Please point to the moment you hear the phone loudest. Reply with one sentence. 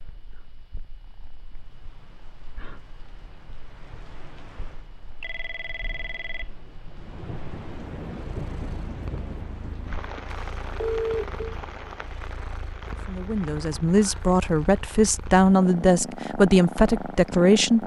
The loudest moment of the phone is at 11 seconds.